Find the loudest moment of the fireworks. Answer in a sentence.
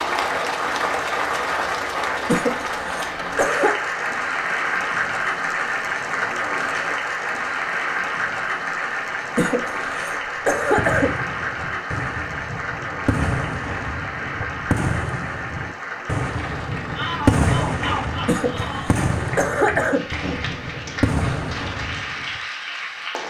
The loudest moment of the fireworks is at 17 seconds.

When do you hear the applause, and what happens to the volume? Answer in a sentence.
You can hear the applause from 0.0 to 23.2 s, getting quieter.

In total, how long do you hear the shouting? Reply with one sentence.
You can hear the shouting for 2 seconds altogether.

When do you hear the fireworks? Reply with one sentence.
You can hear the fireworks from 10.4 to 22.4 s.